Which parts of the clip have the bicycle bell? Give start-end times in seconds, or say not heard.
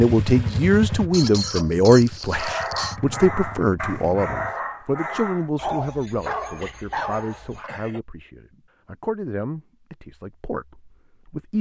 not heard.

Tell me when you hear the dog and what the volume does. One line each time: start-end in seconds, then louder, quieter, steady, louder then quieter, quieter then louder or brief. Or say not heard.
2.4-7.7 steady.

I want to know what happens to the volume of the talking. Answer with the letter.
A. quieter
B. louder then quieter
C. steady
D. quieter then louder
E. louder
A.